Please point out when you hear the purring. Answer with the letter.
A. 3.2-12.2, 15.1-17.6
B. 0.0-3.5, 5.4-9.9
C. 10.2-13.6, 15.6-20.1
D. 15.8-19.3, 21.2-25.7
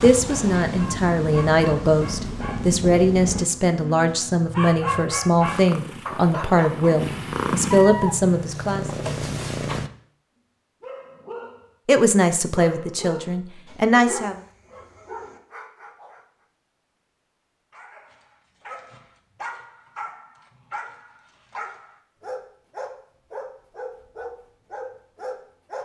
B.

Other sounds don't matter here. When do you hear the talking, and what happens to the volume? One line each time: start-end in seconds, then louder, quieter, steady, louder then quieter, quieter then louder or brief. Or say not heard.
0.0-8.9 steady
11.8-14.4 brief.